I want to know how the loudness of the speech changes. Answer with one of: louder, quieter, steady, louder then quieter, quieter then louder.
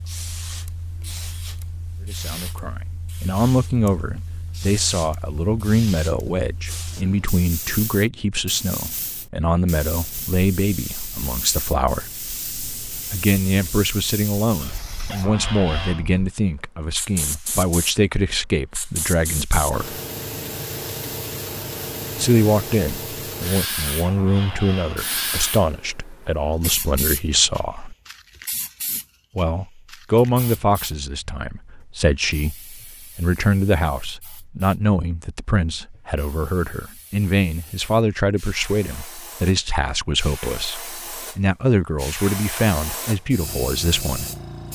steady.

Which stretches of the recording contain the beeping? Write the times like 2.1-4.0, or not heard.
not heard.